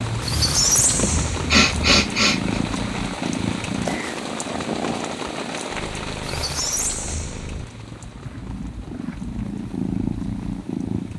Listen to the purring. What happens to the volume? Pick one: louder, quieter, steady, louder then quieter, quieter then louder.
quieter then louder.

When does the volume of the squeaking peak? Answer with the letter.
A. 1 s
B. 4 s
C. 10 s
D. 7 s
A.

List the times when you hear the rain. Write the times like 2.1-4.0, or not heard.
0.0-11.1.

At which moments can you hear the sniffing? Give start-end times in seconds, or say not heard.
0.9-2.6.